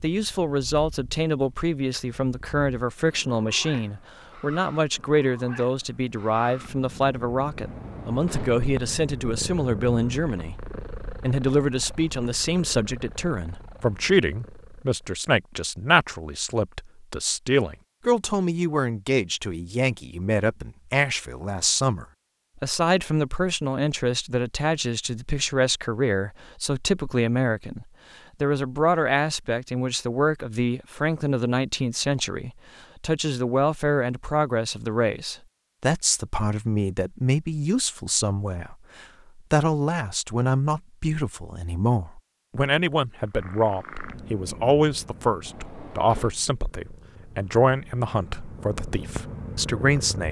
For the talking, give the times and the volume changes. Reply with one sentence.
You can hear the talking from 0.0 to 50.2 s, at a steady volume.